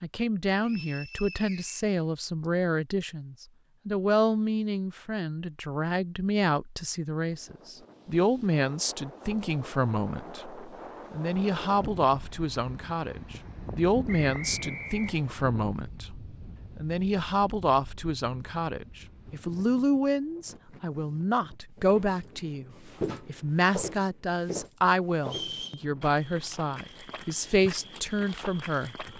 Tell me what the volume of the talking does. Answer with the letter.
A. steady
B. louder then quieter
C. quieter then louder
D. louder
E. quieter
A.